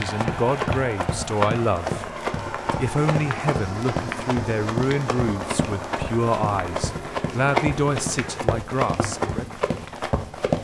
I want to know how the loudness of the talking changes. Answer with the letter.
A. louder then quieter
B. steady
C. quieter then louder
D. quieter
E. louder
B.